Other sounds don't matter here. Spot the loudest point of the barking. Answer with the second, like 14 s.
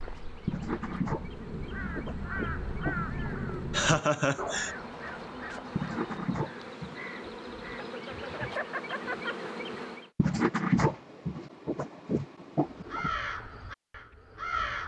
11 s.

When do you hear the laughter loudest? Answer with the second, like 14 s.
4 s.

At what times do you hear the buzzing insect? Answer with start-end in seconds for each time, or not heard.
0.0-10.1.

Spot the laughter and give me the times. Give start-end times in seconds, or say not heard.
3.7-4.7, 7.8-9.3.